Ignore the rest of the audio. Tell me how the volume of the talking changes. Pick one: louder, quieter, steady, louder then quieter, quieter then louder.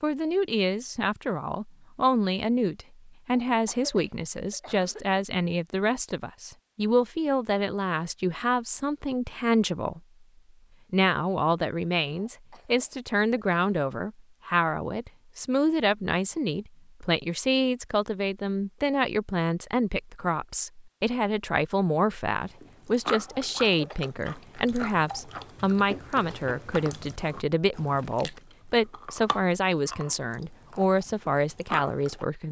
steady.